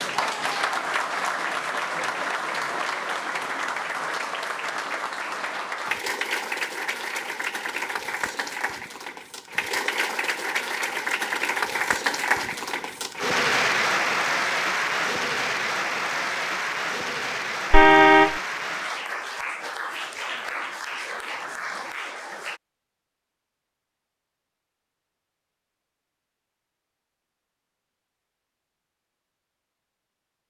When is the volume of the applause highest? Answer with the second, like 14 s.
14 s.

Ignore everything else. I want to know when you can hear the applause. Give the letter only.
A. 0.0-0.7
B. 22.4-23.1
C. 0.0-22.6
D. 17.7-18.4
C.